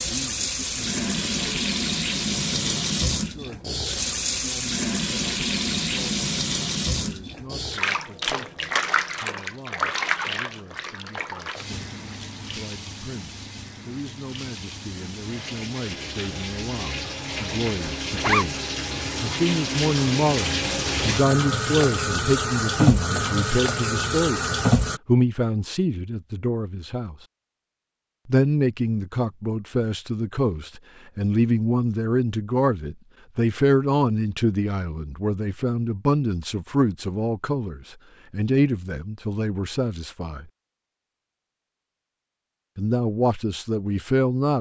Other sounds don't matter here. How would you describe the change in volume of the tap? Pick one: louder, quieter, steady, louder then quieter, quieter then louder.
quieter then louder.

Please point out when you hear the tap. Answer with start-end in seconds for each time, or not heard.
0.0-25.0.